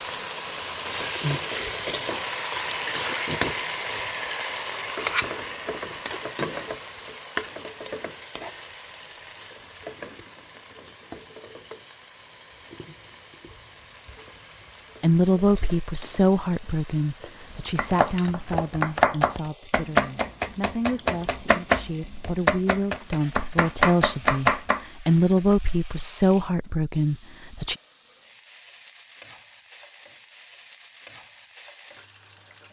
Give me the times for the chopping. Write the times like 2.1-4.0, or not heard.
17.7-24.9.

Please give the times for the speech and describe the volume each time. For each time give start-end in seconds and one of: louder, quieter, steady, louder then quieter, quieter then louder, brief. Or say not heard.
15.0-27.8 quieter then louder.